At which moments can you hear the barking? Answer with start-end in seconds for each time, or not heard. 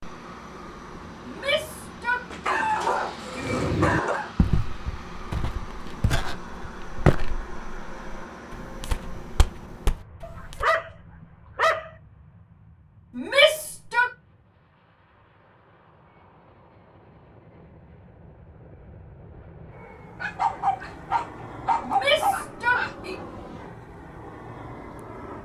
2.3-4.3, 10.2-11.9, 20.2-22.9.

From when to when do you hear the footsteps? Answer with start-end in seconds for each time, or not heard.
3.4-10.7.